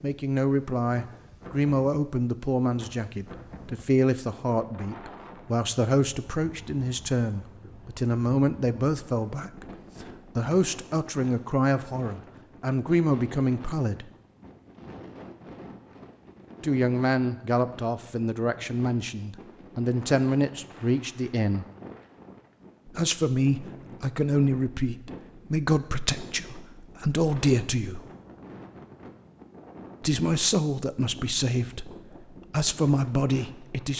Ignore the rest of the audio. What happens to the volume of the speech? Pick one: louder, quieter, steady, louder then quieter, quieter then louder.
steady.